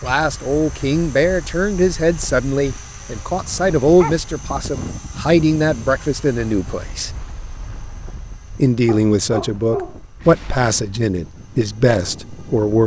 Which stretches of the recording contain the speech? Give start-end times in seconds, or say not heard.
0.0-7.1, 8.6-12.8.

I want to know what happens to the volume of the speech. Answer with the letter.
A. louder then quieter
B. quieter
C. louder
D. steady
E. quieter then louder
D.